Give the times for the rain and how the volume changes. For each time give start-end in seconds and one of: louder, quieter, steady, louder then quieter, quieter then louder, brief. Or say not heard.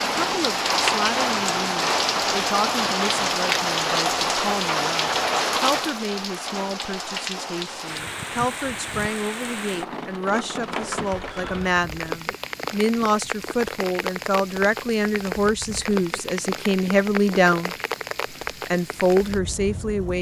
0.0-20.1 quieter.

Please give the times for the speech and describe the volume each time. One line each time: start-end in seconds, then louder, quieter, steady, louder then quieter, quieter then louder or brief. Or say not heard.
0.0-17.8 louder
18.6-20.1 brief.